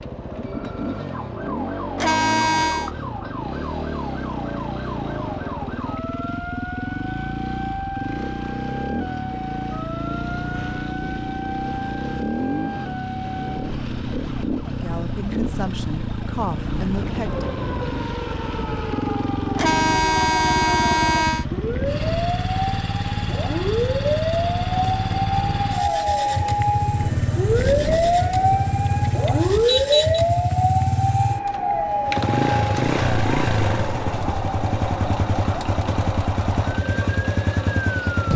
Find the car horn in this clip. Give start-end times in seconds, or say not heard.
1.9-2.9, 19.6-21.4, 29.6-30.2.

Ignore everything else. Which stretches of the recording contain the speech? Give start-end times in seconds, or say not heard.
14.7-17.5.